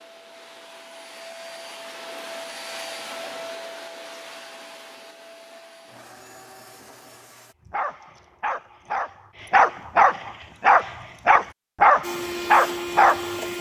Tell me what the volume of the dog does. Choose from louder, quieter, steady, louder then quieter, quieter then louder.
louder.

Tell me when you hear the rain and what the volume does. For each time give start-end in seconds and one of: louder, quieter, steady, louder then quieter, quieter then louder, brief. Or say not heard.
not heard.